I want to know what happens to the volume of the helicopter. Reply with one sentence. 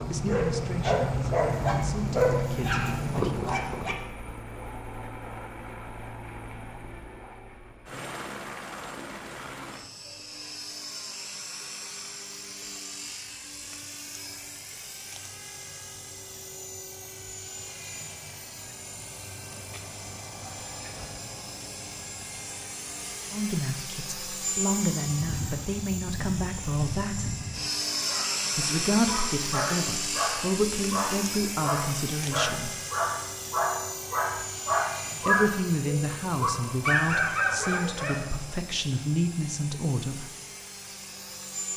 The loudness of the helicopter goes up, then down.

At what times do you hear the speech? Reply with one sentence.
You can hear the speech from 0.1 to 3.4 s, from 23.3 to 27.4 s, from 28.6 to 32.7 s and from 35.2 to 40.2 s.